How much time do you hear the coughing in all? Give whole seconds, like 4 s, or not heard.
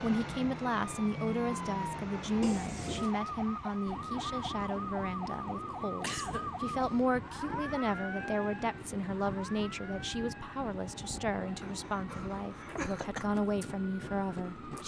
3 s.